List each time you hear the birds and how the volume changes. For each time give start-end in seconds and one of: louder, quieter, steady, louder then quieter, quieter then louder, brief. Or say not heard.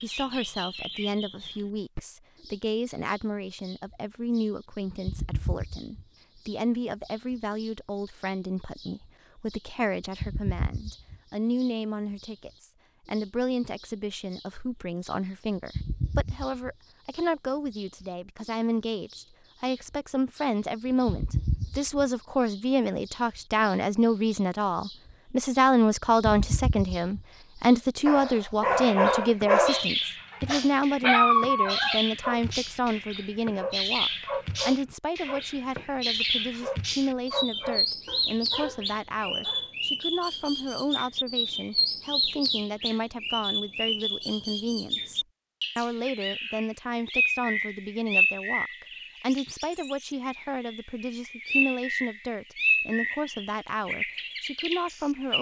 0.0-55.3 louder.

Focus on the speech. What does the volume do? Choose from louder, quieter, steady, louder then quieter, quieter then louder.
louder then quieter.